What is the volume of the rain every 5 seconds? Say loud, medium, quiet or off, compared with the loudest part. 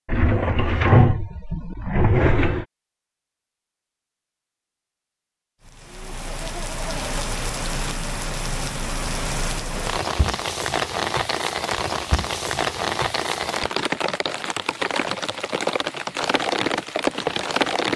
off, medium, loud, loud.